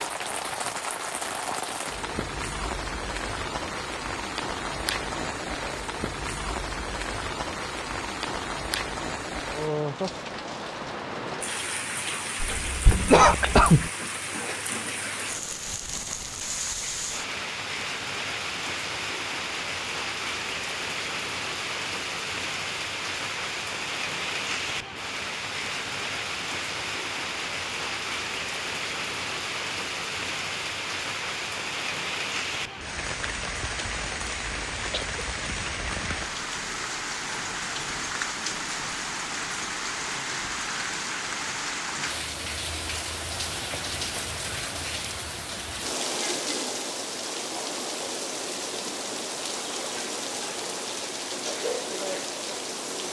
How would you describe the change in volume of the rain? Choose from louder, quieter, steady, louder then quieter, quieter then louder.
steady.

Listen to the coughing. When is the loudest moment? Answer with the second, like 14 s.
13 s.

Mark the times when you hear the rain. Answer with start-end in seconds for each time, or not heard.
0.0-53.0.